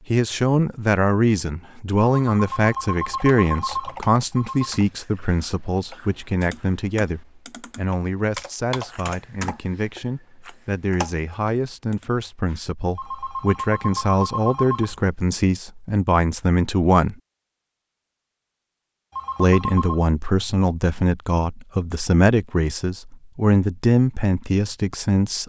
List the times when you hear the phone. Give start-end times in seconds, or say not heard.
2.1-4.8, 12.9-14.9, 19.1-20.1.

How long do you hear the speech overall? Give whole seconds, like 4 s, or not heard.
23 s.